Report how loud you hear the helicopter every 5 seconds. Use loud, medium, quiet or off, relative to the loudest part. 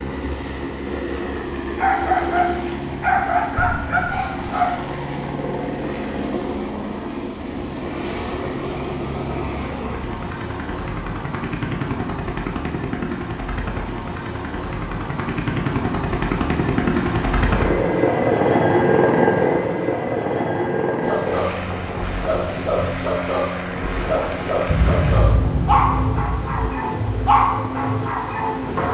medium, medium, medium, loud, medium, medium.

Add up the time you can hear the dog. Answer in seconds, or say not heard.
11 s.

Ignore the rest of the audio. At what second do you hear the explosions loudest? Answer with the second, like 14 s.
25 s.